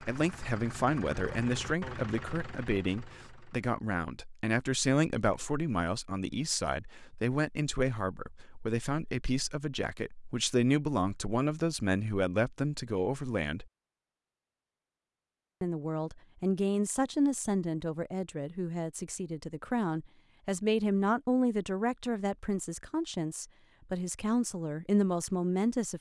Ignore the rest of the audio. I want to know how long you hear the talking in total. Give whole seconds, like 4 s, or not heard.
24 s.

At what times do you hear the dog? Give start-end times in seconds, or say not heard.
not heard.